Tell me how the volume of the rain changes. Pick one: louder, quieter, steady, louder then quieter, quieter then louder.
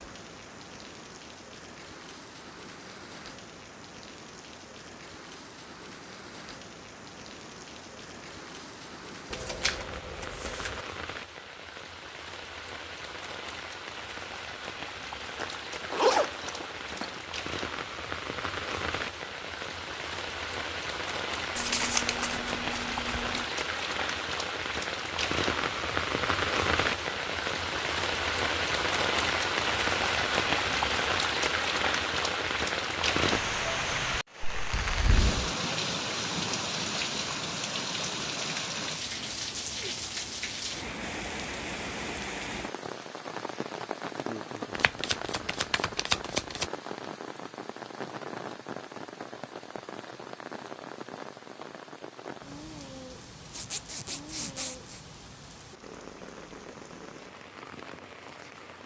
louder then quieter.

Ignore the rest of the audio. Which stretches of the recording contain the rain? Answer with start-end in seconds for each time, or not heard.
0.0-58.8.